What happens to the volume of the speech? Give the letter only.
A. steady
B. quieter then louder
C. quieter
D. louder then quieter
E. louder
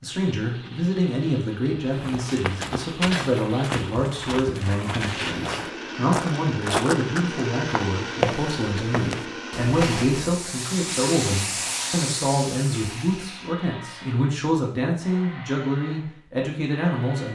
A.